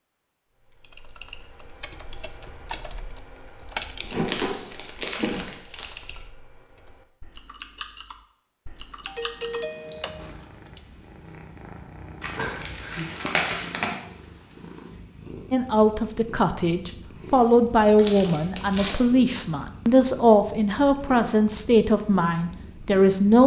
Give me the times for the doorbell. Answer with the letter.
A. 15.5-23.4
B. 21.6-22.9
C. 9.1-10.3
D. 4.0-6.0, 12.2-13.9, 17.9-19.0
C.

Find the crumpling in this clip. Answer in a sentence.
You can hear the crumpling from 4.0 to 6.0 s, from 12.2 to 13.9 s and from 17.9 to 19.0 s.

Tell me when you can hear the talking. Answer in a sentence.
You can hear the talking from 15.5 to 23.4 s.